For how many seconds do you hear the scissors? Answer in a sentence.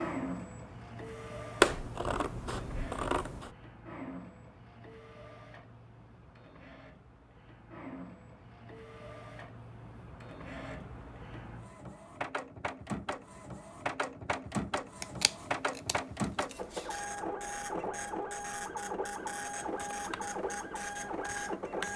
The scissors can be heard for 4 seconds in total.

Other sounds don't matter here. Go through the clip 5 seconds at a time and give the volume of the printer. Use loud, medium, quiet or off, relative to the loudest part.
medium, quiet, loud, loud, loud.